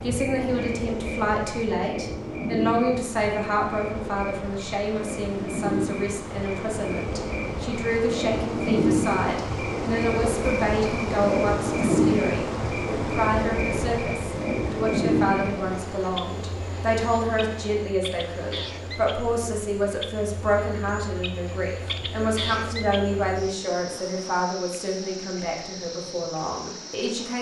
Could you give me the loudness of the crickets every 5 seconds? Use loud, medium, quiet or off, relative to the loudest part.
medium, loud, loud, medium, medium, quiet.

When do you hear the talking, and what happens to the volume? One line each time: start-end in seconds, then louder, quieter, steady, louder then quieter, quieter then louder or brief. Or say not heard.
0.0-27.3 steady.